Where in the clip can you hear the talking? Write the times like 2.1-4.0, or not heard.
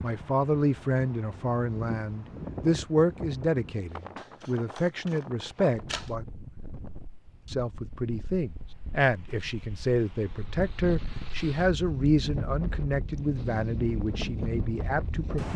0.0-6.2, 7.5-15.5.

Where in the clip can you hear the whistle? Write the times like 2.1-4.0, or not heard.
not heard.